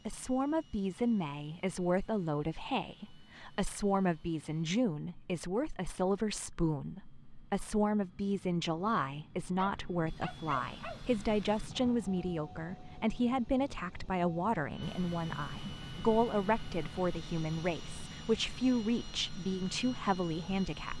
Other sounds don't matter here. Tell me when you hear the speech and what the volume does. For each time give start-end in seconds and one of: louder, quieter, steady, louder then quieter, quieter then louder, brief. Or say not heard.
0.1-20.9 steady.